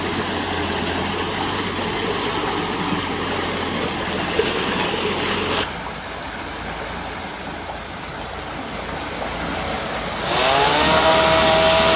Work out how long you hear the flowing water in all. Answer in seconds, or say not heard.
12 s.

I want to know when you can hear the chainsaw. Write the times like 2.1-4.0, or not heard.
10.2-11.9.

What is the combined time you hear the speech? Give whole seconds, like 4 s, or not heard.
not heard.